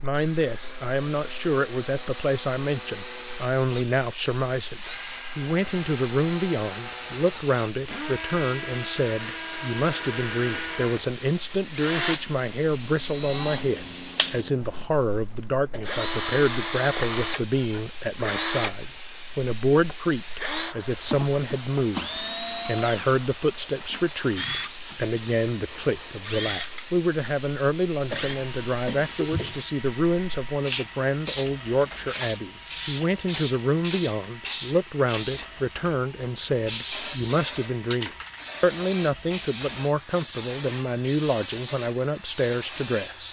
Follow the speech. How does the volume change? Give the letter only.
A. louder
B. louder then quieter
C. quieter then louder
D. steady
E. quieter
D.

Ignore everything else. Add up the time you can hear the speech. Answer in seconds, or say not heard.
43 s.